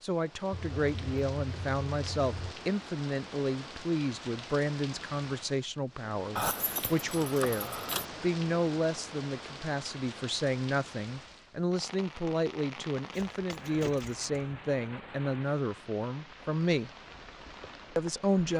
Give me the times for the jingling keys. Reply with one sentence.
You can hear the jingling keys from 0.5 to 2.5 s, from 6.3 to 8.1 s and from 13.1 to 14.6 s.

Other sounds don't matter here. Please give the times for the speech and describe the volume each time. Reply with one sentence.
You can hear the speech from 0.0 to 16.9 s, at a steady volume; and briefly from 17.9 to 18.5 s.